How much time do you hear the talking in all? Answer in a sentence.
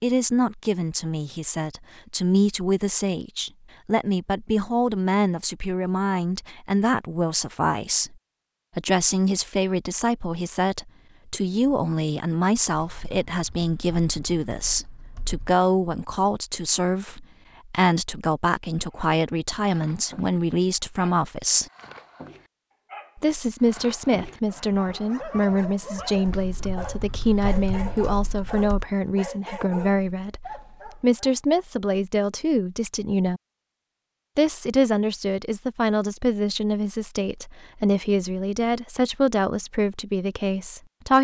The talking can be heard for 38 seconds in total.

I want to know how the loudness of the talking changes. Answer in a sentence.
The volume of the talking stays about the same.